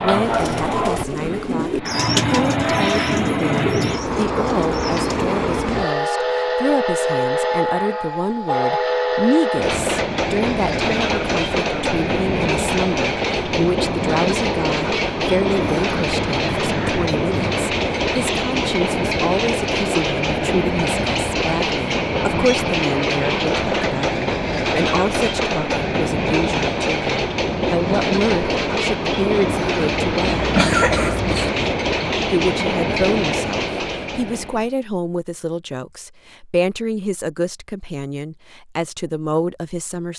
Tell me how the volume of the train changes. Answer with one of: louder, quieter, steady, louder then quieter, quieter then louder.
steady.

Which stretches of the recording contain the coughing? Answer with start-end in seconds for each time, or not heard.
30.4-31.5.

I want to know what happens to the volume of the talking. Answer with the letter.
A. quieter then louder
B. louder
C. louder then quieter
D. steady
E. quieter
D.